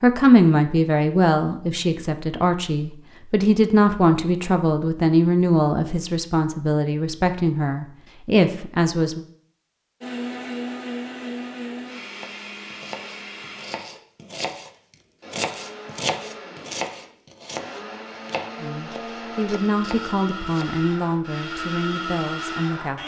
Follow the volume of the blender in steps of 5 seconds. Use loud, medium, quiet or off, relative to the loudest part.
off, off, loud, medium, loud.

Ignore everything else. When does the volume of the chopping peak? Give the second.
16 s.